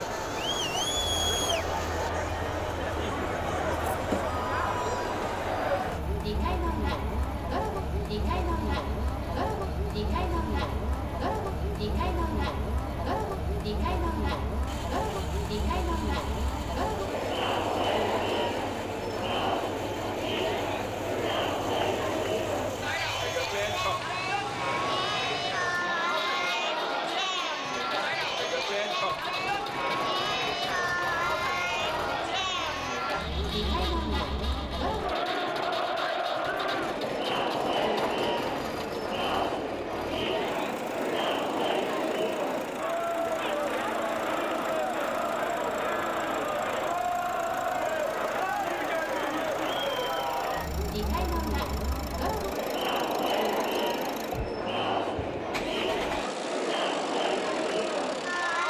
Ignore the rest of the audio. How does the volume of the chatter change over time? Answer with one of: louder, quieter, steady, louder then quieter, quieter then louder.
steady.